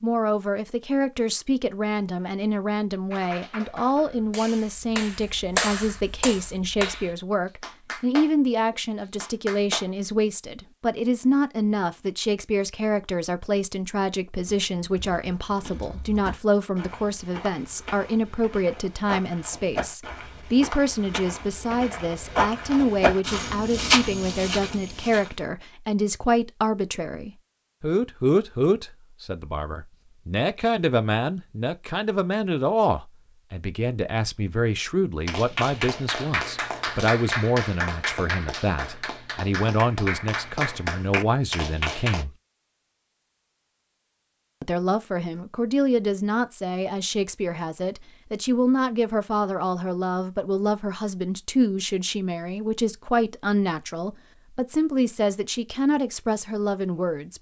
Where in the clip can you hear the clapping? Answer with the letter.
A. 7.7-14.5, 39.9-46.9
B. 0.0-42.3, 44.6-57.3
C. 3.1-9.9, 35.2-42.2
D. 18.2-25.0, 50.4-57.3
C.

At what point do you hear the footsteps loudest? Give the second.
24 s.